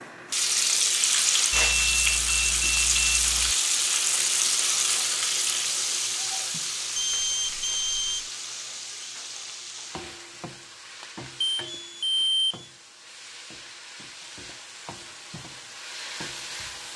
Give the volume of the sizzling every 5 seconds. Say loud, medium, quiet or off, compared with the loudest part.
loud, medium, quiet, quiet.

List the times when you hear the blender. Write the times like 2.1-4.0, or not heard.
not heard.